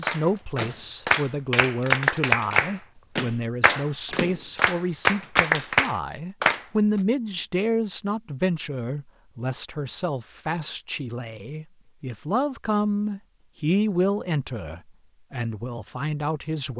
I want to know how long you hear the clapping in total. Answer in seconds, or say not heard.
7 s.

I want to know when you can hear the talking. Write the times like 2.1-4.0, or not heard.
0.0-16.7.